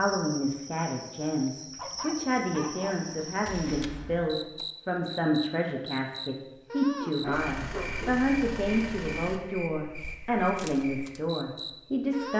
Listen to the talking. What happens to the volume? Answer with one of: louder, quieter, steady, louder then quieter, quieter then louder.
steady.